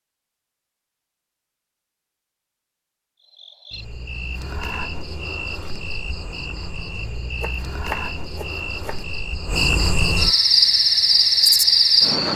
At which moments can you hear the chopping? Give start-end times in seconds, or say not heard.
7.4-9.1.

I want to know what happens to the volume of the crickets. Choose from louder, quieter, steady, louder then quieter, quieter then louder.
louder.